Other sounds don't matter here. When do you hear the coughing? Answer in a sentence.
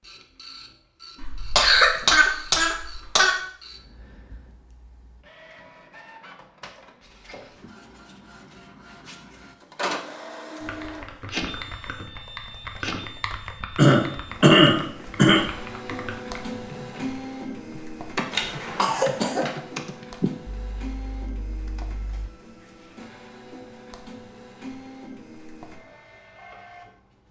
The coughing can be heard from 1.2 to 3.4 s, from 13.8 to 15.4 s and from 18.3 to 19.6 s.